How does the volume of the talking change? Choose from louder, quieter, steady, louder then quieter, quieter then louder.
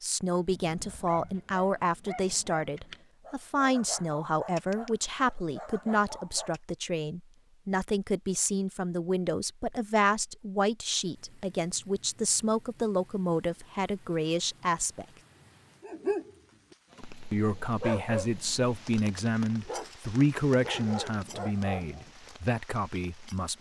steady.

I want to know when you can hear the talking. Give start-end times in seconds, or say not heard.
0.0-15.1, 17.3-23.5.